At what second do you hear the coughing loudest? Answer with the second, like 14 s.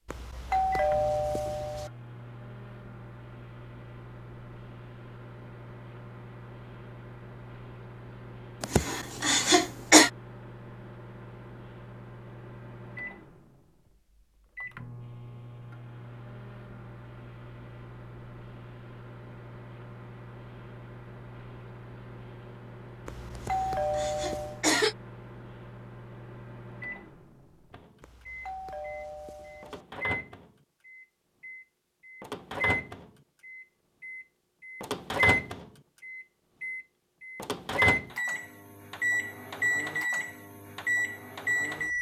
10 s.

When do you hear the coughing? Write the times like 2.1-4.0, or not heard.
8.6-10.1, 23.4-24.9.